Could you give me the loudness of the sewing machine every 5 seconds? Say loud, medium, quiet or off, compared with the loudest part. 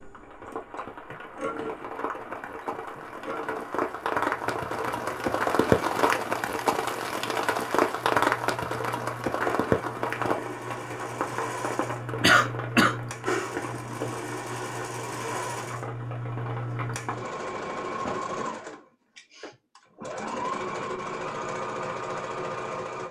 medium, medium, loud, loud, loud.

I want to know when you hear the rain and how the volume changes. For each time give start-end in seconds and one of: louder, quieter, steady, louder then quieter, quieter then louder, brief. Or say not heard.
0.0-18.2 louder then quieter.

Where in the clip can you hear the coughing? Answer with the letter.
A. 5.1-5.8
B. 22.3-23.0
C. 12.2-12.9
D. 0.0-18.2
C.